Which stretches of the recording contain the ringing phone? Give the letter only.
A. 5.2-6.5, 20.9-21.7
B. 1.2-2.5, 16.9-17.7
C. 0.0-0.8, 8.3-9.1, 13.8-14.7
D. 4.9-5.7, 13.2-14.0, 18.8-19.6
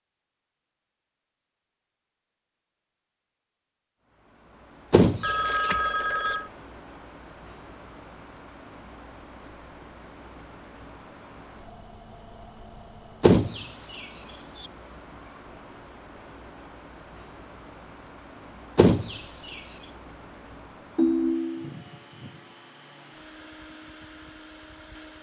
A.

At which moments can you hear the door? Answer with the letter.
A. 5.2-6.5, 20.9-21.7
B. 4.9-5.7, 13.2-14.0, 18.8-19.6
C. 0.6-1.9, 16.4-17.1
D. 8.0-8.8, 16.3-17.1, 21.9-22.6
B.